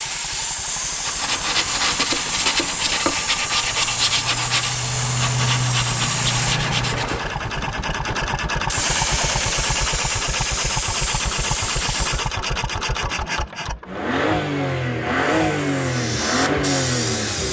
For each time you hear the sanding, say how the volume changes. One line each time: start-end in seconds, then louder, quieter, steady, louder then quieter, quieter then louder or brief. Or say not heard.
0.9-7.3 steady.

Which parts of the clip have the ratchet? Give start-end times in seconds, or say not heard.
not heard.